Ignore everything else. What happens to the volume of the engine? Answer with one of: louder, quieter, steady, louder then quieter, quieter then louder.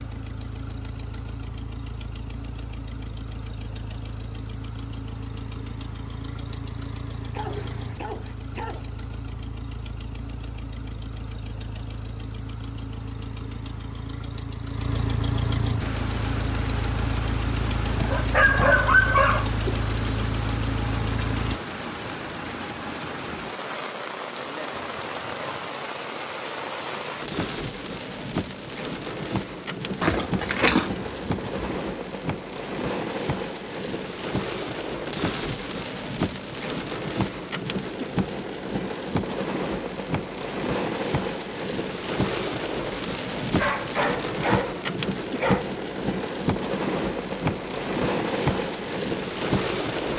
louder.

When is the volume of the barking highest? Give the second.
19 s.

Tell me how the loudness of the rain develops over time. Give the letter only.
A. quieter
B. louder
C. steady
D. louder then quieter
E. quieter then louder
B.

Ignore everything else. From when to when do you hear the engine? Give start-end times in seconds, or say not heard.
0.0-21.6.